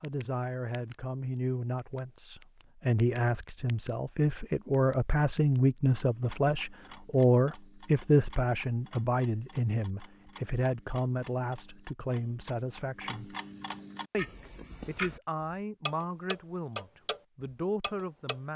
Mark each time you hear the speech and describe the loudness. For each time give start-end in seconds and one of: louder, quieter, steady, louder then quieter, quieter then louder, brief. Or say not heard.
0.0-13.3 louder then quieter
14.1-18.5 quieter then louder.